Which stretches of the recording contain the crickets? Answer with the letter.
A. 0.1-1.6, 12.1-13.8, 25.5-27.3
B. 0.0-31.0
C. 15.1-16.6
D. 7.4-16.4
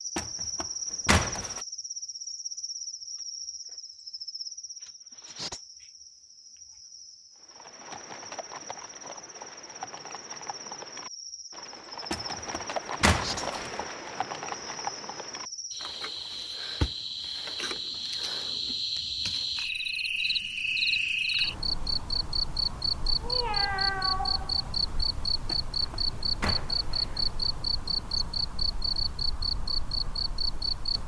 B.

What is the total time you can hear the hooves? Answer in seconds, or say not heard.
9 s.